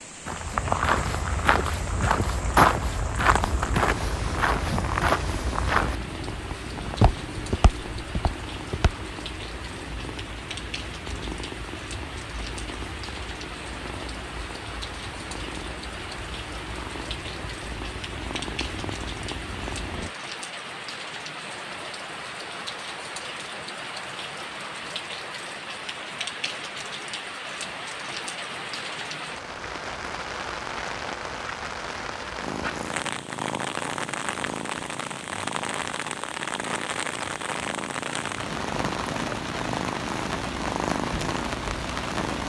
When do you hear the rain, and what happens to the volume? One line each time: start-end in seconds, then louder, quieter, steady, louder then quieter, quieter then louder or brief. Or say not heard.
0.0-42.4 louder.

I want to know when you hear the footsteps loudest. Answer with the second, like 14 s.
3 s.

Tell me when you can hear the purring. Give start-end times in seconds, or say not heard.
3.4-20.1, 32.4-42.4.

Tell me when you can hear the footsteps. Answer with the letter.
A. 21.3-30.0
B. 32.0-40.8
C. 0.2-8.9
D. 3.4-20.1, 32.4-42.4
C.